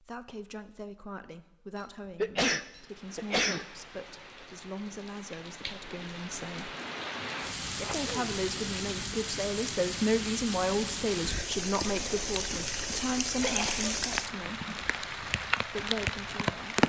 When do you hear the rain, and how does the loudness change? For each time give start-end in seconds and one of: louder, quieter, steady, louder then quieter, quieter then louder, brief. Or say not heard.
2.6-16.8 louder.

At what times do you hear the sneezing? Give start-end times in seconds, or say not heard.
1.8-3.6, 7.8-8.3, 13.4-14.0.